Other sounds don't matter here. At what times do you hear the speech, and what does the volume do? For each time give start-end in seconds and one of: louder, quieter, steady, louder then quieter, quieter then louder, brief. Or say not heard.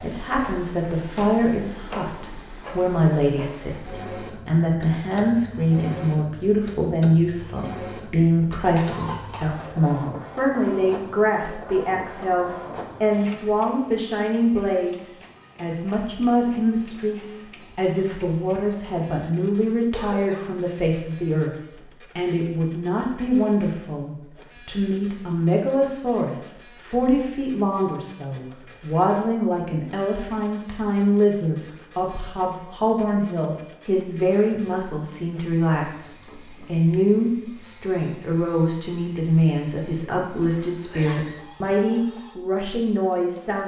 0.0-43.6 steady.